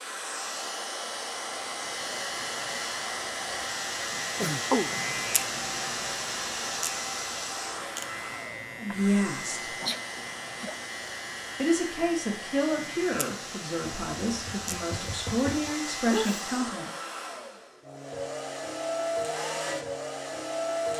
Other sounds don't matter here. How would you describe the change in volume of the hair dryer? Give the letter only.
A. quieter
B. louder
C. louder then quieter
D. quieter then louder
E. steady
D.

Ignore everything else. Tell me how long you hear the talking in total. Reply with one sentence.
You can hear the talking for 6 seconds altogether.